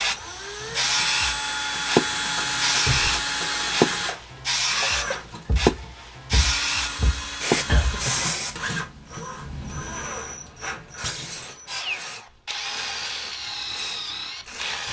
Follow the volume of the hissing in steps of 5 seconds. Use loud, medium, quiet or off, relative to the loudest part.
loud, loud, quiet.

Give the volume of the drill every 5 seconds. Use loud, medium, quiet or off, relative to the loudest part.
loud, medium, medium.